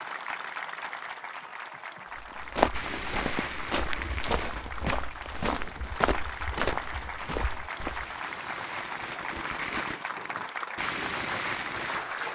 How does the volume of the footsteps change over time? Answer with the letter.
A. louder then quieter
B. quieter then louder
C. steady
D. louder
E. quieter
E.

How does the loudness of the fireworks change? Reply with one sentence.
The loudness of the fireworks goes down, then up.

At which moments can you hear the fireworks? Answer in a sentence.
The fireworks can be heard from 2.7 to 12.0 s.